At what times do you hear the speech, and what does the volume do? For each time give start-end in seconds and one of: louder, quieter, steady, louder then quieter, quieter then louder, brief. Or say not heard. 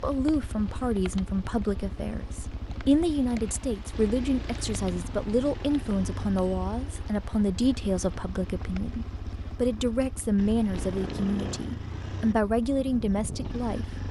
0.0-13.8 steady.